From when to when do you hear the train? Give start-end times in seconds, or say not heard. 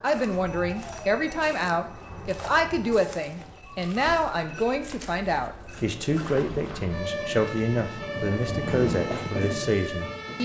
5.7-10.3.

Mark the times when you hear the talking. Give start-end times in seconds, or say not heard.
0.0-10.3.